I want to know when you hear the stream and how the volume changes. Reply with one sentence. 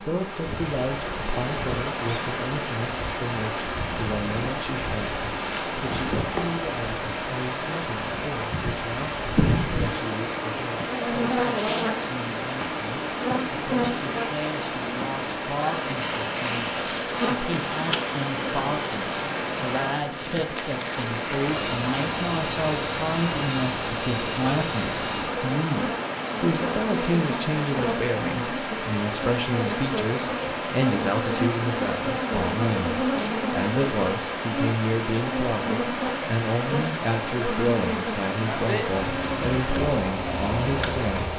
You can hear the stream from 0.0 to 41.3 s, at a steady volume.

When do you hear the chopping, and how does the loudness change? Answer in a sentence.
You can't hear the chopping here.